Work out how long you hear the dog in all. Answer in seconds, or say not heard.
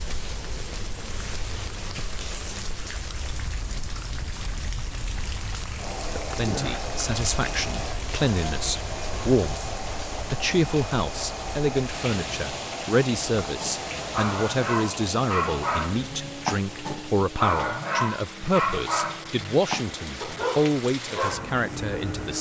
8 s.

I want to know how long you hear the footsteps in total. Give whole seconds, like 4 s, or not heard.
not heard.